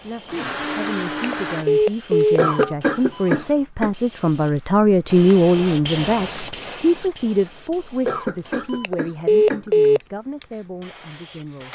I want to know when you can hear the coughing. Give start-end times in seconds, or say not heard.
2.4-3.9, 8.1-9.9.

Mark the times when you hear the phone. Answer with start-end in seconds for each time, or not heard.
1.1-3.4, 8.7-10.0.